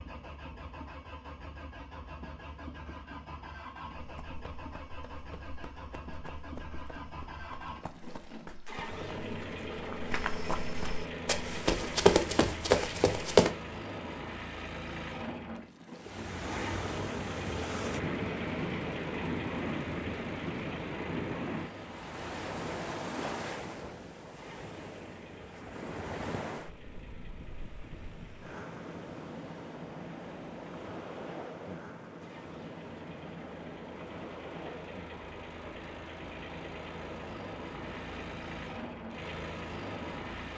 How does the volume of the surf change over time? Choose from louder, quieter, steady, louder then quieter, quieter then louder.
quieter.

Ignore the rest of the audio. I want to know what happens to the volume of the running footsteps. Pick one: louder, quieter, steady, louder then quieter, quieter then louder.
louder.